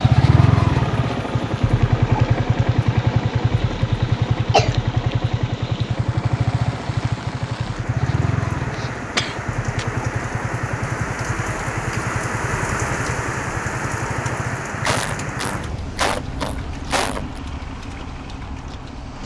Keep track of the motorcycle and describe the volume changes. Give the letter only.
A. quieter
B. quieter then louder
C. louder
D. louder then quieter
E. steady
A.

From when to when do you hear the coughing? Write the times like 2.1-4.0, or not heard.
3.6-4.8, 8.8-9.9, 14.8-17.4.